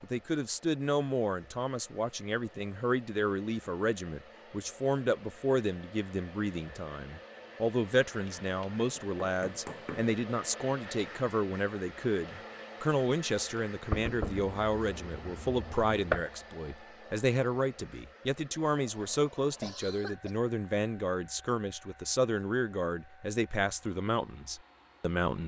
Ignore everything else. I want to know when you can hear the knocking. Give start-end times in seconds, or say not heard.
8.9-10.1, 13.9-16.2.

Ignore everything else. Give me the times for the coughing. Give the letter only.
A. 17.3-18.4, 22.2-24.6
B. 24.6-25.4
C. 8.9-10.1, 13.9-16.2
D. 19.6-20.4
D.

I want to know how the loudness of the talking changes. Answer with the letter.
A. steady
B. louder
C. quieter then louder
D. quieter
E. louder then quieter
A.